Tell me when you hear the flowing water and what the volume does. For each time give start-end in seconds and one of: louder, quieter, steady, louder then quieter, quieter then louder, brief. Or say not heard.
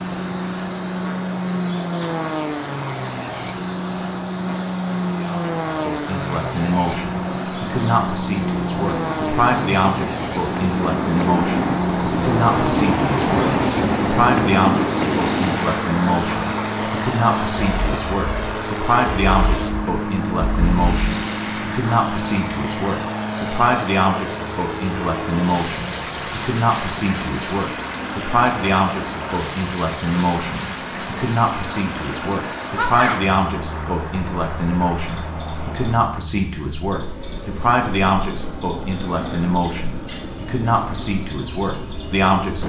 0.0-36.0 louder then quieter.